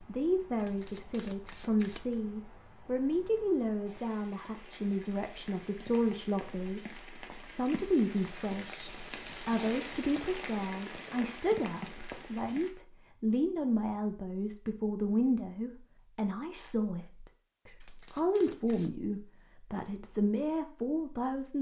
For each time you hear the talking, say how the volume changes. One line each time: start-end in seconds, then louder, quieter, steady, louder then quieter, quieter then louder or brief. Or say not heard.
0.1-21.5 steady.